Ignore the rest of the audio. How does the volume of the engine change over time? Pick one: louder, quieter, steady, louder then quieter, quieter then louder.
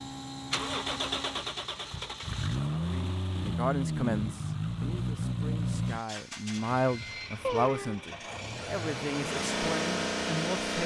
quieter then louder.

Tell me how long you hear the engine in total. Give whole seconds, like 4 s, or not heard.
11 s.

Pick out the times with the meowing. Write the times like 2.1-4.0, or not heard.
7.4-8.1.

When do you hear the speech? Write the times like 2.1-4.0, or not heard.
2.5-10.8.